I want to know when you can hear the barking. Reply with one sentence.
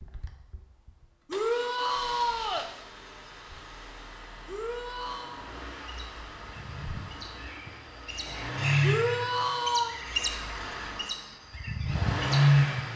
You can't hear the barking here.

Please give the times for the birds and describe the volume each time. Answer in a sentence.
You can hear the birds from 5.8 to 12.8 s, getting louder.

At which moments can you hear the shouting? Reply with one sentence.
You can hear the shouting from 1.2 to 2.7 s, from 4.5 to 5.4 s and from 8.8 to 9.9 s.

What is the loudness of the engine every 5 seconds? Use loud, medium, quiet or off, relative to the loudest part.
quiet, medium, loud.